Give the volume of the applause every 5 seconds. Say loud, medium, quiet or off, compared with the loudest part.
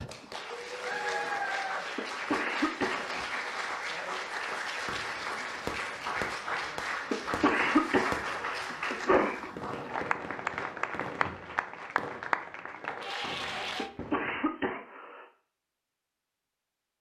loud, loud, loud, off.